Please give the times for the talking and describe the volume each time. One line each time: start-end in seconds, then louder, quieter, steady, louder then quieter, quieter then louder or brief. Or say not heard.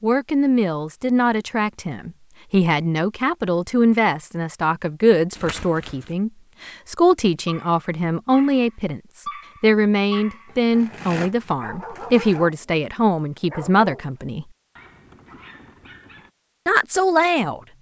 0.0-14.4 steady
16.6-17.6 brief.